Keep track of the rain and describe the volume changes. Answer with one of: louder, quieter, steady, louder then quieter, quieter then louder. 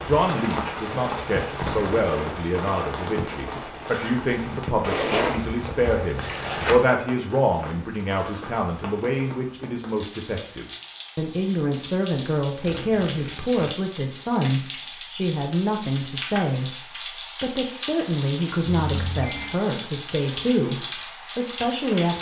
quieter then louder.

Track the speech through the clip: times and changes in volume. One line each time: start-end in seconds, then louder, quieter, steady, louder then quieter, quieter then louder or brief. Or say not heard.
0.0-22.1 steady.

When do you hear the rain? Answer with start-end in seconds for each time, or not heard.
0.0-22.1.